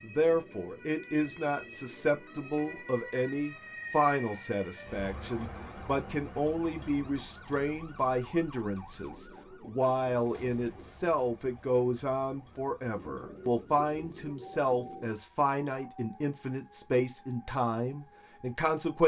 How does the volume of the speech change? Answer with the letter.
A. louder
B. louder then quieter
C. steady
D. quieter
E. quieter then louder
C.